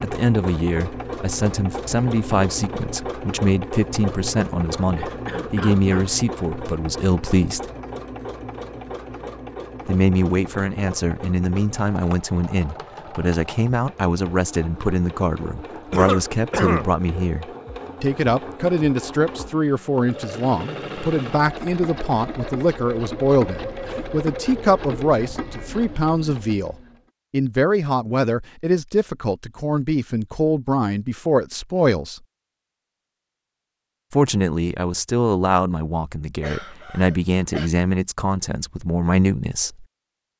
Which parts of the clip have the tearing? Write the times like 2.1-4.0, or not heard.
not heard.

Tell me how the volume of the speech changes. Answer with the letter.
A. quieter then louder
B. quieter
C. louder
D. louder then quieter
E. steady
E.